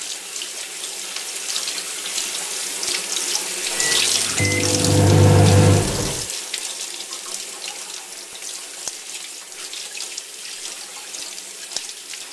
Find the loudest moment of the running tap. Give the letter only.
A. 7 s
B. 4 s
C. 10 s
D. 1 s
B.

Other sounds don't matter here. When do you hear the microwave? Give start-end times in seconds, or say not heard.
3.8-6.2.